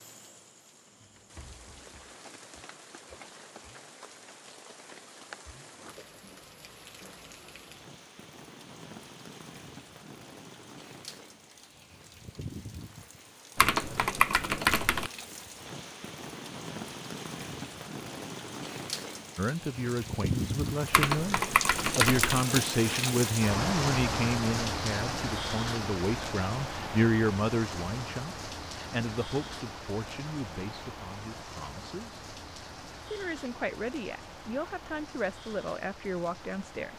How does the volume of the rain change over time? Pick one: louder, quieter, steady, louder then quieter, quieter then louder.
louder then quieter.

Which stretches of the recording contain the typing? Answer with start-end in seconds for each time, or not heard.
13.6-15.1, 20.9-22.4.